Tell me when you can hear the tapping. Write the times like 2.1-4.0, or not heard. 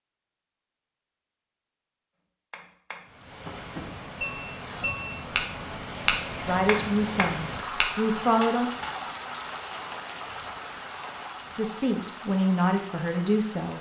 2.5-8.9.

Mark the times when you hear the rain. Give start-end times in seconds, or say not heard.
3.0-13.7.